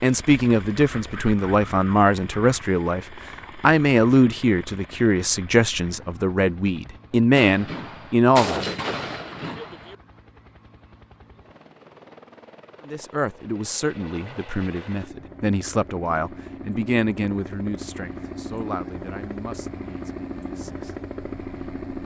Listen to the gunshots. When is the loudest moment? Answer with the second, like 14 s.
9 s.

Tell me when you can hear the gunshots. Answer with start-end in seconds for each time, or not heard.
7.3-9.9.